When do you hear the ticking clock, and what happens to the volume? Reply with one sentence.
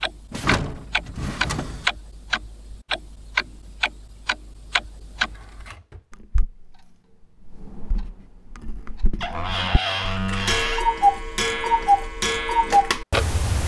The ticking clock can be heard from 0.0 to 13.6 s, getting quieter then louder.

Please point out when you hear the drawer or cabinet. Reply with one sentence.
You can hear the drawer or cabinet from 0.3 to 1.9 s, from 5.1 to 6.2 s and from 9.2 to 10.8 s.